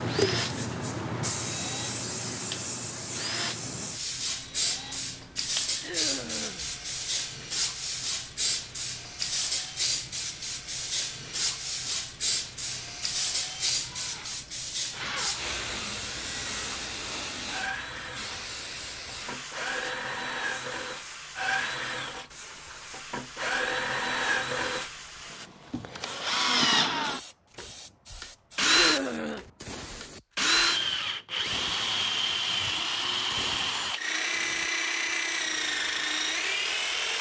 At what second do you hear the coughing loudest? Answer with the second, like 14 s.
29 s.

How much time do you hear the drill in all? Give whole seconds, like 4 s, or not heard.
37 s.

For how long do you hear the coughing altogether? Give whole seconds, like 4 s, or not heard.
2 s.